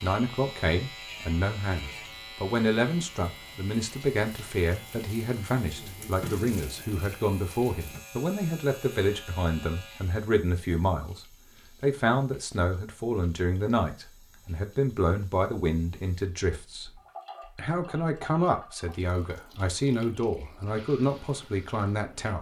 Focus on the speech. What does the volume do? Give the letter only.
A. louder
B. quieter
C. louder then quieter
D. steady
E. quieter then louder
D.